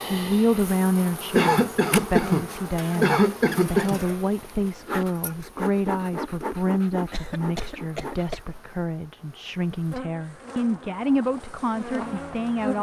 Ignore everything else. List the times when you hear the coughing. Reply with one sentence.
The coughing can be heard from 1.4 to 4.0 s and from 7.1 to 8.6 s.